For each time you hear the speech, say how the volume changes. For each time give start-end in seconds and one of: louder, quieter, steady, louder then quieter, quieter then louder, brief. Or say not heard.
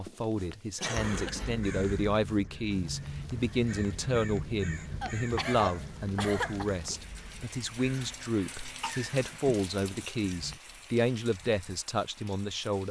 0.0-12.8 steady.